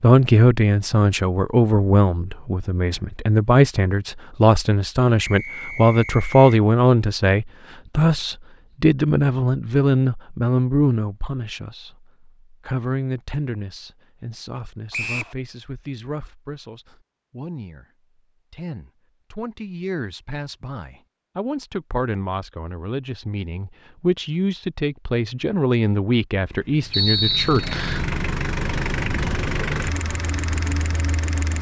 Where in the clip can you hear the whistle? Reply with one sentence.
The whistle can be heard from 5.2 to 6.6 s, from 14.9 to 15.3 s and from 26.9 to 28.1 s.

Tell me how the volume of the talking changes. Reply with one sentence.
The loudness of the talking goes down, then up.